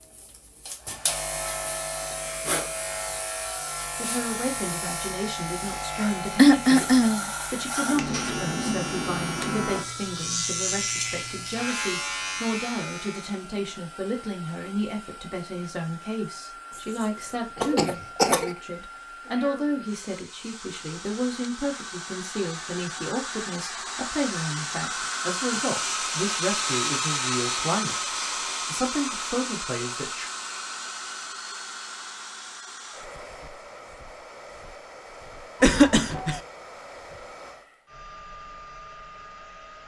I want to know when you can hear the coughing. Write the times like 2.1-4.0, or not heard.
6.3-7.3, 16.8-18.6, 35.6-36.4.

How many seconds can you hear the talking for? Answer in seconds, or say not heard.
26 s.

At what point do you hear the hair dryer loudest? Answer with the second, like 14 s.
27 s.